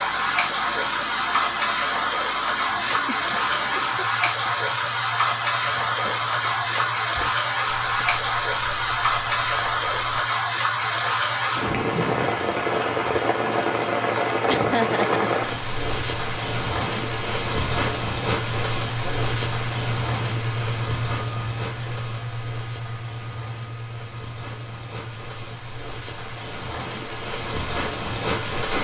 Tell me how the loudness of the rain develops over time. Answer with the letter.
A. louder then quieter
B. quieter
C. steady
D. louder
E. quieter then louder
B.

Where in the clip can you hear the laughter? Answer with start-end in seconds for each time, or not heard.
2.8-4.5, 14.4-15.2.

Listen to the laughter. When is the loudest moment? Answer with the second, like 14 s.
15 s.